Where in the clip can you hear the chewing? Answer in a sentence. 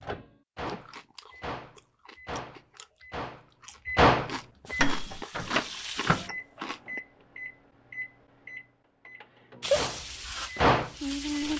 The chewing can be heard from 0.7 to 7.0 s.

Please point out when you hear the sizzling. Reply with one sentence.
The sizzling can be heard from 4.7 to 6.3 s and from 9.6 to 11.5 s.